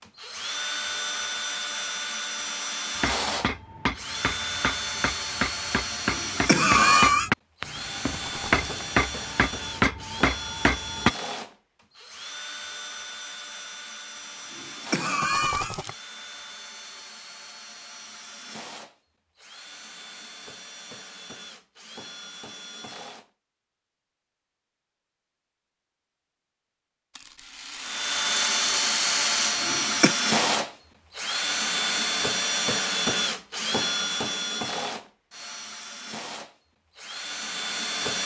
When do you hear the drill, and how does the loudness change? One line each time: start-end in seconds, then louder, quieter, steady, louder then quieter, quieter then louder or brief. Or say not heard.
0.0-23.3 quieter
27.8-38.2 quieter.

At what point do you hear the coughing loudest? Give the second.
7 s.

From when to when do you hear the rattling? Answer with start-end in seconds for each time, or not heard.
8.1-8.8, 15.2-15.9, 27.1-29.6.